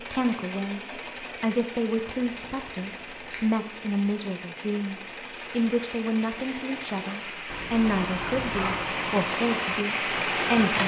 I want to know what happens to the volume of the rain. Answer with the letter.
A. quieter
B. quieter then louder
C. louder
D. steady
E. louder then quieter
C.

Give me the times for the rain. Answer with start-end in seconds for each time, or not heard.
0.0-10.8.